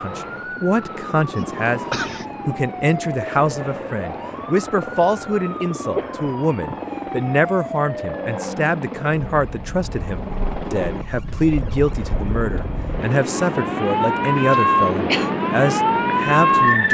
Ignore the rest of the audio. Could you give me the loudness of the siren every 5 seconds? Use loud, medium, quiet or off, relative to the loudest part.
quiet, quiet, medium, loud.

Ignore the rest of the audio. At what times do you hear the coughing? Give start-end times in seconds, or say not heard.
1.4-2.2, 5.9-6.8, 14.5-15.3.